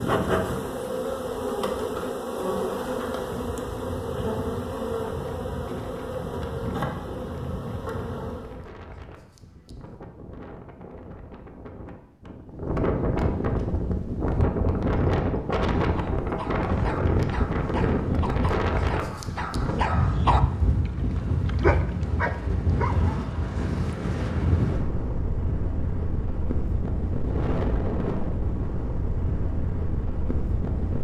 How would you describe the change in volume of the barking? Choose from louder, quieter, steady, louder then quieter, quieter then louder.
louder.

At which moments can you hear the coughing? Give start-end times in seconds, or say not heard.
not heard.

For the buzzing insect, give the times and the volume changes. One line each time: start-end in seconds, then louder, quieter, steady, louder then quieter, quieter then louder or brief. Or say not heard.
0.0-8.7 steady.